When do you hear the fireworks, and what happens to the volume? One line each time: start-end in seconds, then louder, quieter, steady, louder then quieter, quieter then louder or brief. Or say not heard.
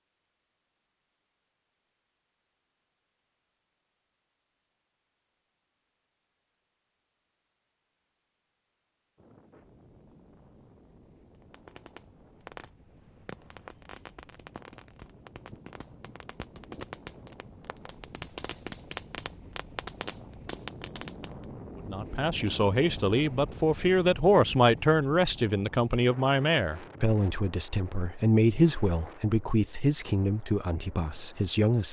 11.4-21.4 louder.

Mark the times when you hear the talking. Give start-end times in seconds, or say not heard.
21.9-31.8.